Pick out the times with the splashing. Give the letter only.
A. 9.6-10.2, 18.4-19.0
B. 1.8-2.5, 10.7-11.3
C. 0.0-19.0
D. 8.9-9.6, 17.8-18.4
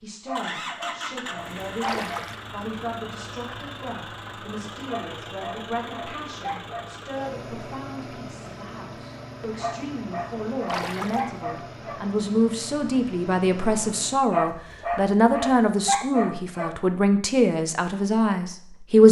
B.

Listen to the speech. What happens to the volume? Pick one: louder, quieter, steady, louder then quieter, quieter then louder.
louder.